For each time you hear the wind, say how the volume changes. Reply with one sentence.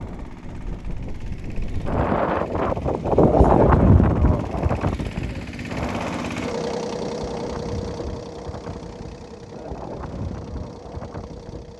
You can hear the wind from 0.0 to 11.7 s, getting louder then quieter.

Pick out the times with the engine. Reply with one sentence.
The engine can be heard from 0.0 to 11.7 s.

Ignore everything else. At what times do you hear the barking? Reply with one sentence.
You can't hear the barking here.